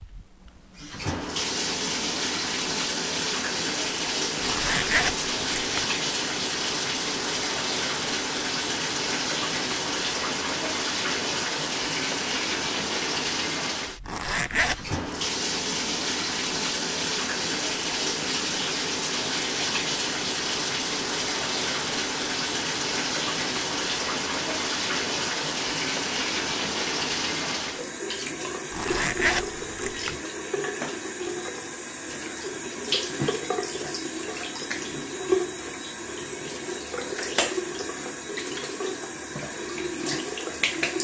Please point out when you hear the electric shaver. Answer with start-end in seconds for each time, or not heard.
not heard.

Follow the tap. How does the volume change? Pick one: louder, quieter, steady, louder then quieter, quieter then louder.
steady.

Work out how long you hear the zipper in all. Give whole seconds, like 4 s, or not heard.
4 s.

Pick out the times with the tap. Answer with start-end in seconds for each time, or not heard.
0.0-40.9.